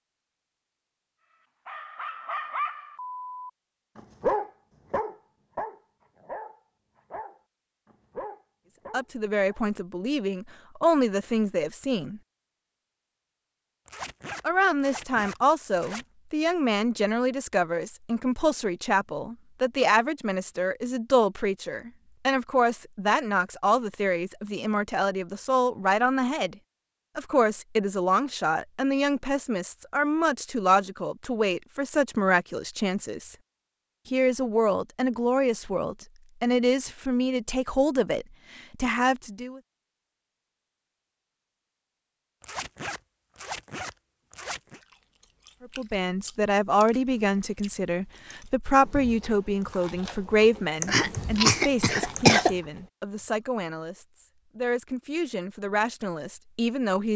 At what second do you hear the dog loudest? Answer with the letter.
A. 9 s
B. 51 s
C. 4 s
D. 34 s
C.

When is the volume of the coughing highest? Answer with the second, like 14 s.
52 s.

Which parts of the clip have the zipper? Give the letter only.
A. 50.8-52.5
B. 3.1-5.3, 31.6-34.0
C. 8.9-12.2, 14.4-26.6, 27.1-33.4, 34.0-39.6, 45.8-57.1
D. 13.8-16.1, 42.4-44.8
D.